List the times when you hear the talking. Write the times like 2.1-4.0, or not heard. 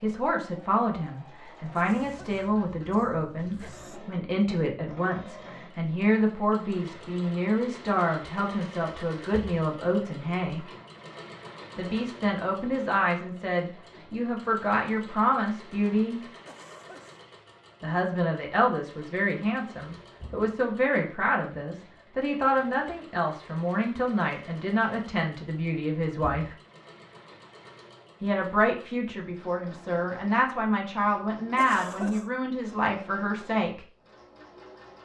0.0-10.7, 11.8-16.2, 17.8-26.6, 28.2-33.8.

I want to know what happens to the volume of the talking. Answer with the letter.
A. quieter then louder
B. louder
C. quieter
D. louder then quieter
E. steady
E.